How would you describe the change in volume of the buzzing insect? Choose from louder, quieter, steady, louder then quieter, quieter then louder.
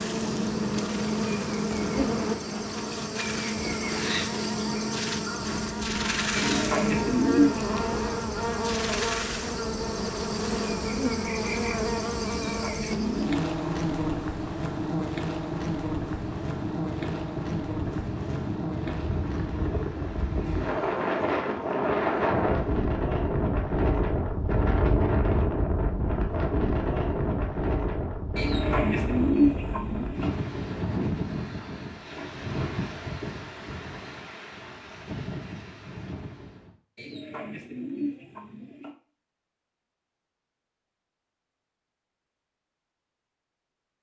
quieter.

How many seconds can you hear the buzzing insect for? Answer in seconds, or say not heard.
23 s.